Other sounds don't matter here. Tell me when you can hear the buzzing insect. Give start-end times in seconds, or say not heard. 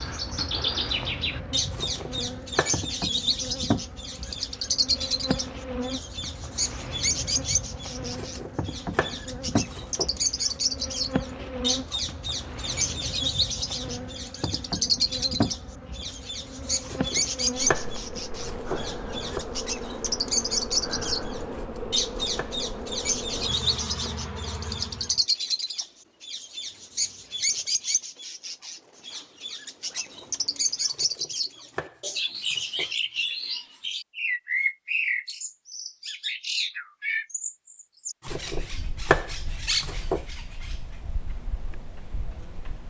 0.0-25.2.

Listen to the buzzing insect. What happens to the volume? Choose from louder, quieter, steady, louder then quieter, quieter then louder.
steady.